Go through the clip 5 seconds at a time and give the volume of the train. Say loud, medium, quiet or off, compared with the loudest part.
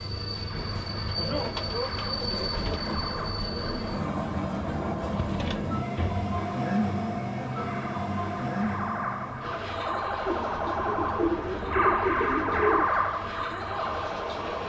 loud, loud, medium.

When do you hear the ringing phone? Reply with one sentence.
The ringing phone can't be heard in this clip.